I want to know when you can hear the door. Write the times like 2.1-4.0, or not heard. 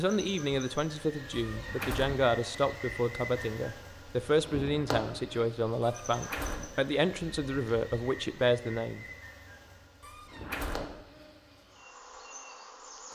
1.3-2.2, 5.8-6.8, 10.0-10.9.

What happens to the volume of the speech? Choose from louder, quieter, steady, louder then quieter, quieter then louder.
steady.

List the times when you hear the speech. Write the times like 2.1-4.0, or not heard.
0.0-9.1.